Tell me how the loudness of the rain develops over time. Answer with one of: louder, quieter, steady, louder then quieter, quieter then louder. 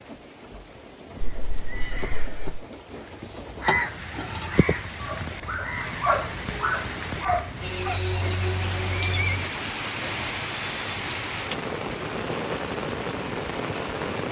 louder.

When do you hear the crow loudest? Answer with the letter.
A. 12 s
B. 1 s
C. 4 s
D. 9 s
C.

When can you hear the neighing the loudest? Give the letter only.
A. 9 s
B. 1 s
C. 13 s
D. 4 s
A.